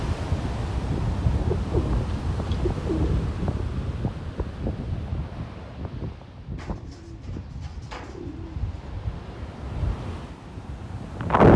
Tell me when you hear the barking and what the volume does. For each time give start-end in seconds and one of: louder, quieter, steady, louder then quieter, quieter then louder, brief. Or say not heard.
not heard.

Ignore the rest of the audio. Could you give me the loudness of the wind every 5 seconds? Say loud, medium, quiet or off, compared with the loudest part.
medium, quiet, loud.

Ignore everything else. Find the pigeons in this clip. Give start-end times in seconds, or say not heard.
1.2-3.3, 6.5-8.9.